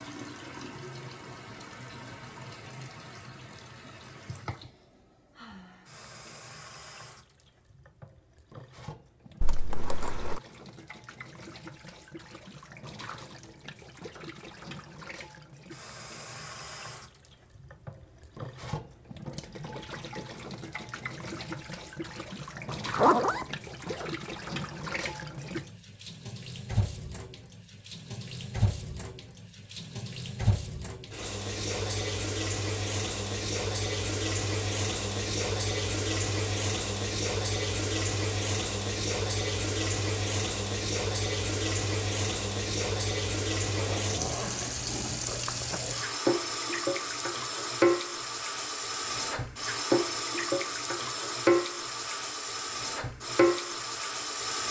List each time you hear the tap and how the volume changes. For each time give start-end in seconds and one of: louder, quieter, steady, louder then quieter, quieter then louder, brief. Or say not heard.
0.0-54.6 louder.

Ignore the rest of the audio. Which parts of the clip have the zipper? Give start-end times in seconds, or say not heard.
9.4-10.4, 22.6-24.1, 43.8-45.8.